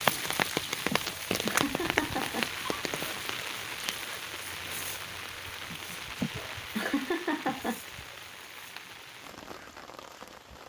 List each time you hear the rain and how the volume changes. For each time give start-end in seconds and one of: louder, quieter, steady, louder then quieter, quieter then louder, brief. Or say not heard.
0.0-10.6 quieter.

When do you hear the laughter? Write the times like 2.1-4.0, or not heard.
0.9-2.9, 6.2-7.8.